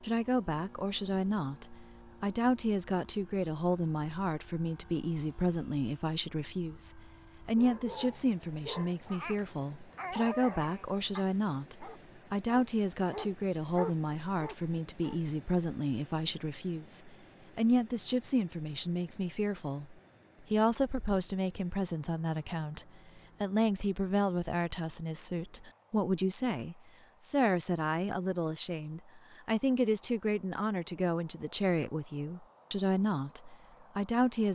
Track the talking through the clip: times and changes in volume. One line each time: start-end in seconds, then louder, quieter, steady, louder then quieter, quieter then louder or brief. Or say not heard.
0.0-34.4 steady.